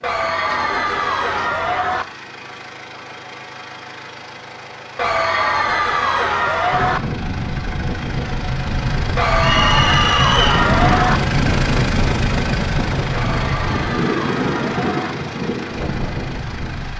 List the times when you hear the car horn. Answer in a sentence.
You can't hear the car horn here.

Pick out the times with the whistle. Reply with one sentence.
The whistle can be heard from 9.4 to 10.6 s.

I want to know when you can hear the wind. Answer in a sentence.
You can hear the wind from 6.7 to 16.9 s.